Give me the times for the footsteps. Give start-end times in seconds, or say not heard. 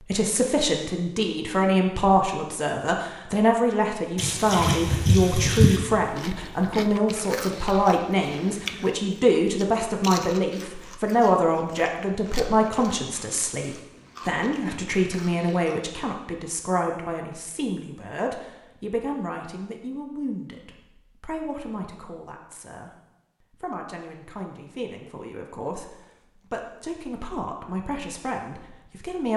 not heard.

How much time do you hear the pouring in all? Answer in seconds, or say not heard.
2 s.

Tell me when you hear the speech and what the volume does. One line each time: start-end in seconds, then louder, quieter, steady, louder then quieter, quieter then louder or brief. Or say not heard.
0.0-29.3 quieter.